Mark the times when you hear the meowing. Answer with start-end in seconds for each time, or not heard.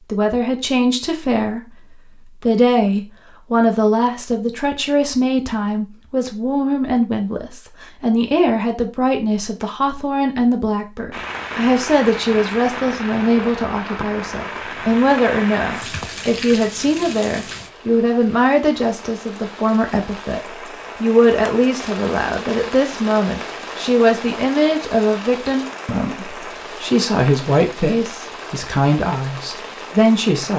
not heard.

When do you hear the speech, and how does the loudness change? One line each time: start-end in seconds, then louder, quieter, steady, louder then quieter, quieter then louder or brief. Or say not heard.
0.1-30.5 steady.